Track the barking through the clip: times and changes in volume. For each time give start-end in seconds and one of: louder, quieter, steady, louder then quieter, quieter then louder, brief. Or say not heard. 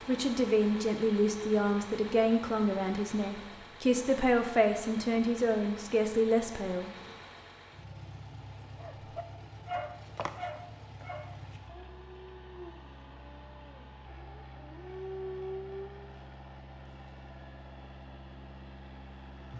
8.8-16.1 quieter then louder.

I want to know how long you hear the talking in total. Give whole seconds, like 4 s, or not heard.
7 s.